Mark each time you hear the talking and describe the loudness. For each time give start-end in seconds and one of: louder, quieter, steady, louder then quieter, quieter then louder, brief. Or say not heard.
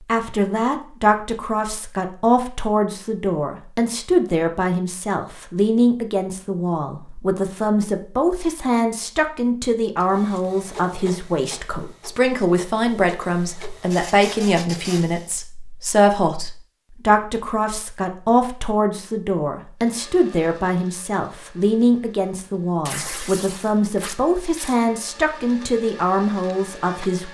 0.1-27.2 steady.